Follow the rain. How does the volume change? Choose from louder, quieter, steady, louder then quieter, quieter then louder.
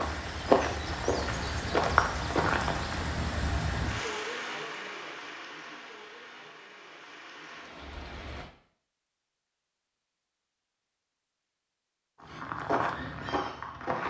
quieter.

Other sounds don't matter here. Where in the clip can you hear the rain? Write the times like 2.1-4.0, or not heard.
0.0-8.5.